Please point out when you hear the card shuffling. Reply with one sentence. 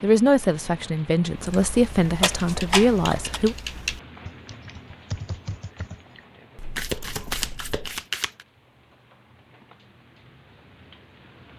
The card shuffling can be heard from 2.2 to 3.4 s and from 6.8 to 8.3 s.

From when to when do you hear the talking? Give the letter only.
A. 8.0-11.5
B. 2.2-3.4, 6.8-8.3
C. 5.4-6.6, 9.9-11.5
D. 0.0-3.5
D.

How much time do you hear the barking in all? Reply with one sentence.
The barking can't be heard in this clip.